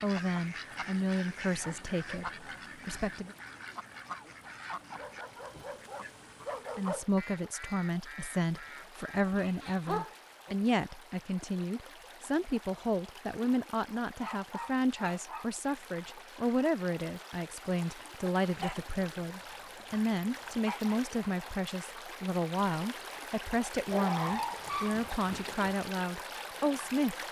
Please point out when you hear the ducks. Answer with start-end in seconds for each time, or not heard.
0.0-10.2.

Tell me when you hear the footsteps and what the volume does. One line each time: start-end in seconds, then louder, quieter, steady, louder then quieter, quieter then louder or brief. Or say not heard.
not heard.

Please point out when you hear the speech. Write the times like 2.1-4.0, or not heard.
0.0-3.4, 6.8-27.2.